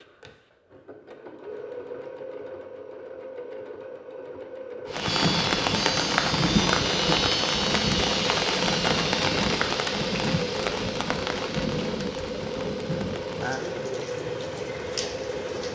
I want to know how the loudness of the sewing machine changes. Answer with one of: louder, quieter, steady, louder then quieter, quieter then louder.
louder.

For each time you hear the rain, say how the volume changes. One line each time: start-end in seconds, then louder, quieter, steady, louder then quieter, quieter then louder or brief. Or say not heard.
4.9-15.6 quieter.